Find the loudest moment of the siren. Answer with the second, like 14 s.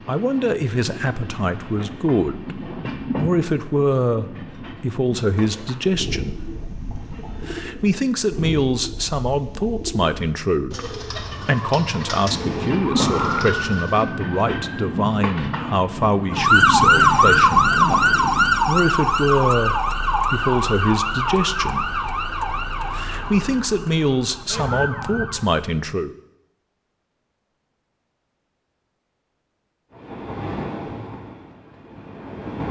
17 s.